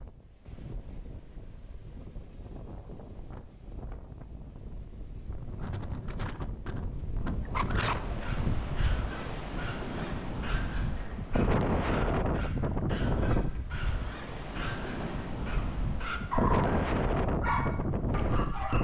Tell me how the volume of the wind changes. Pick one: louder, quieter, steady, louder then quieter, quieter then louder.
louder.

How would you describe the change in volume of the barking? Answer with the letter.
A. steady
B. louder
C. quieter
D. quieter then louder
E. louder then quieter
B.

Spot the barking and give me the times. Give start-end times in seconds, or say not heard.
8.2-18.7.